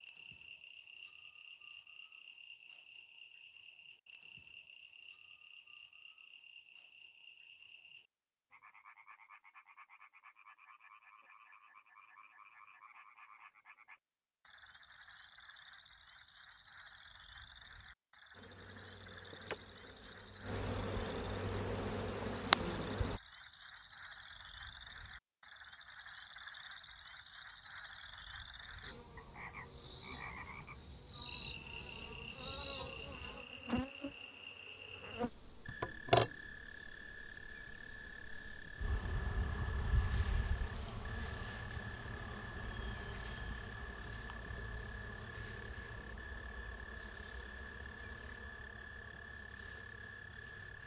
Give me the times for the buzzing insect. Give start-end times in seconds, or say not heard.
18.4-23.2, 28.8-50.8.